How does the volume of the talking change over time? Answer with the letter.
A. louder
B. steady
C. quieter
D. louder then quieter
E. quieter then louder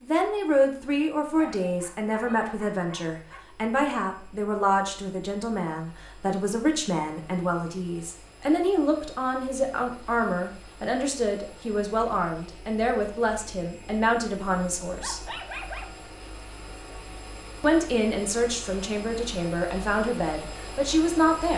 B.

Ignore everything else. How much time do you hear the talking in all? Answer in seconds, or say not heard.
19 s.